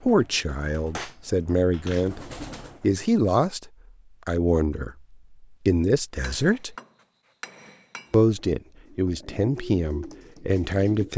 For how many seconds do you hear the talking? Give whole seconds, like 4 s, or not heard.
9 s.